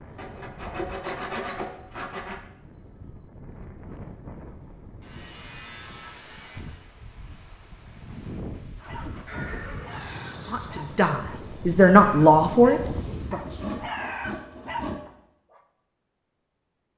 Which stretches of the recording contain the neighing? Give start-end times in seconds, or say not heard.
9.2-10.9.